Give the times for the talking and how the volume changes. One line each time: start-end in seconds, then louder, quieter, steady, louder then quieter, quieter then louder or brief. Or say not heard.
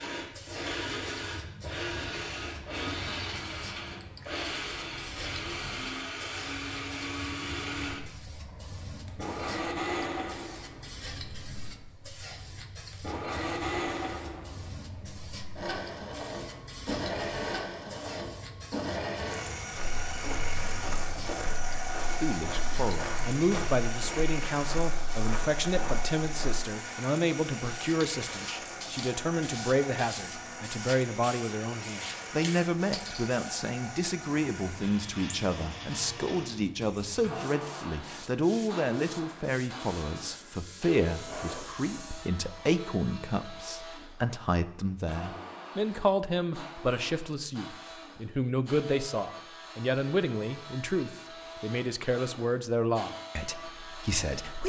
22.2-54.6 steady.